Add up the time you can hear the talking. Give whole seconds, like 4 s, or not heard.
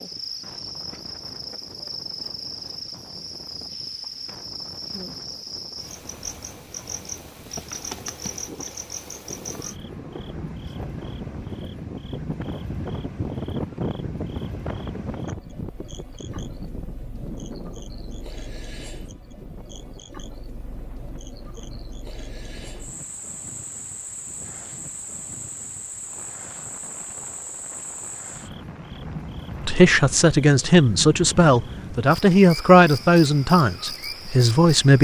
5 s.